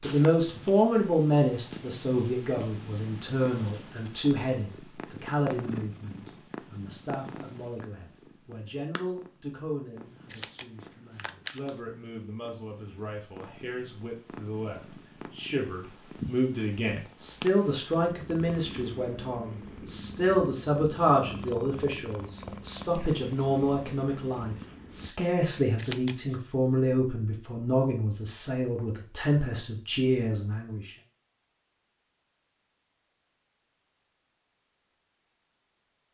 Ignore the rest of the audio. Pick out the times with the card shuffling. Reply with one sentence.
You can hear the card shuffling from 10.3 to 11.8 s and from 25.8 to 26.4 s.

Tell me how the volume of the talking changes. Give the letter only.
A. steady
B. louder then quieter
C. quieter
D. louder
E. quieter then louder
E.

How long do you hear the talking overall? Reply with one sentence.
The talking can be heard for 31 seconds in total.